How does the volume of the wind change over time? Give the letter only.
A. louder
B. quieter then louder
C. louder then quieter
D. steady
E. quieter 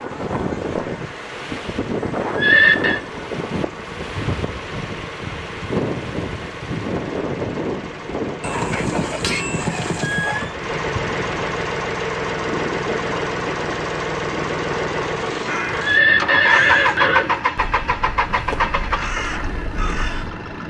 E.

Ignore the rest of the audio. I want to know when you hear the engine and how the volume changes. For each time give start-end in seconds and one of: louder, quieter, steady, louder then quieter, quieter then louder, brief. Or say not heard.
0.0-20.6 louder.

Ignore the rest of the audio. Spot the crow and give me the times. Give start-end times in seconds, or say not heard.
15.3-20.4.